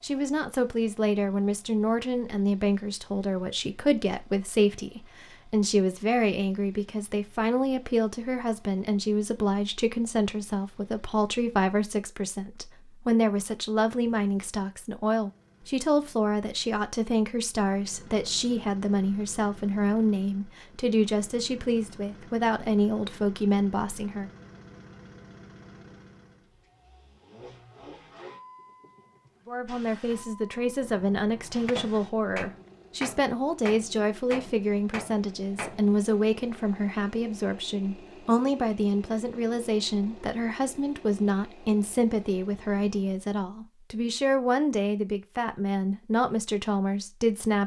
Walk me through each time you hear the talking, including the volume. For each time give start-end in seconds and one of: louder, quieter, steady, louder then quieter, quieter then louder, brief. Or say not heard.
0.0-24.3 steady
29.4-47.6 steady.